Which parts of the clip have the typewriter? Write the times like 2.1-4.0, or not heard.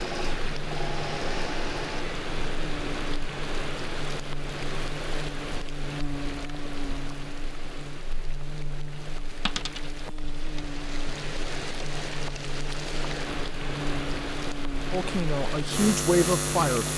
not heard.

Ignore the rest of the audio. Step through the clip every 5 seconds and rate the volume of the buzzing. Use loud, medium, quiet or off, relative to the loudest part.
medium, medium, medium, loud.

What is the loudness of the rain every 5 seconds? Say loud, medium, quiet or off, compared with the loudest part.
loud, medium, loud, loud.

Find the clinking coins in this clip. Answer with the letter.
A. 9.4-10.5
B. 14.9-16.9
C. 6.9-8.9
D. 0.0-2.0
A.